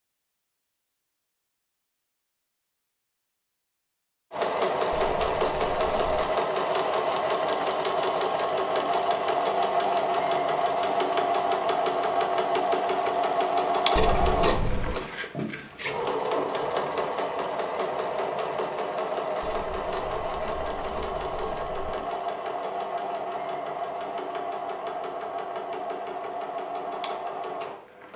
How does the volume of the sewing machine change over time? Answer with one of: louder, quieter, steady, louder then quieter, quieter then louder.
quieter.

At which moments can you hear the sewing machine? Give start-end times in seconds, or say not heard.
4.3-28.1.